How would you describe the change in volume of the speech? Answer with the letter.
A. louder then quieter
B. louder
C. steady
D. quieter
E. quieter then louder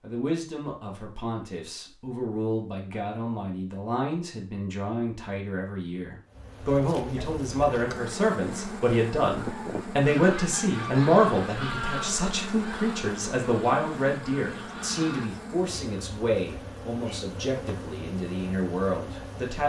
A.